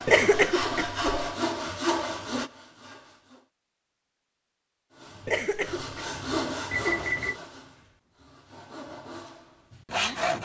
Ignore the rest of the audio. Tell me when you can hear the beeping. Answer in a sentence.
The beeping can be heard from 6.7 to 7.4 s.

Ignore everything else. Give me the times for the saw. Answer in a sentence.
The saw can be heard from 0.0 to 3.5 s and from 5.0 to 10.3 s.